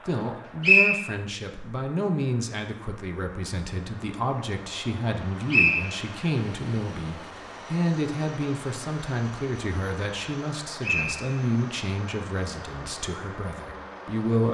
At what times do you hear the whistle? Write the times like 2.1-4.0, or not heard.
0.6-1.1, 5.5-5.9, 10.8-11.2.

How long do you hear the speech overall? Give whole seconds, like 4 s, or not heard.
14 s.